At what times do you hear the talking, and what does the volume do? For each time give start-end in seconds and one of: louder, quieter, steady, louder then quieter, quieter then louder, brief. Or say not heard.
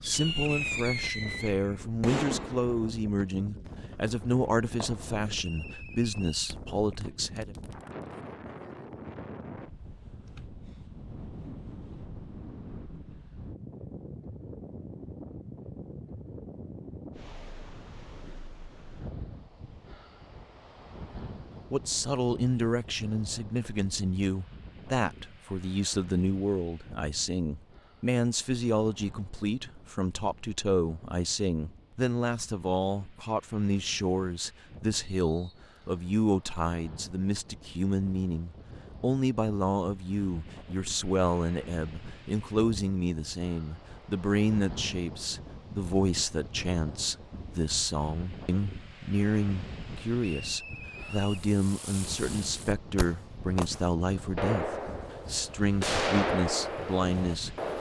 0.0-7.5 steady
21.7-57.5 steady.